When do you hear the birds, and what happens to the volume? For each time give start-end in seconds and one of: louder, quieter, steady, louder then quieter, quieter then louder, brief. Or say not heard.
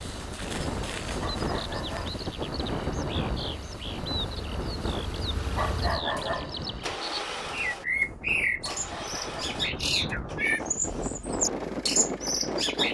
0.0-12.8 louder.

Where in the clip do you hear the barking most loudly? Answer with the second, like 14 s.
6 s.